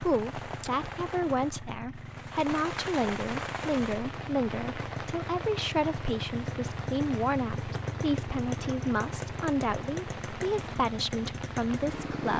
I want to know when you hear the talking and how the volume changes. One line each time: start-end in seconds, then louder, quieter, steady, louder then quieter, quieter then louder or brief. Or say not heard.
0.0-12.3 steady.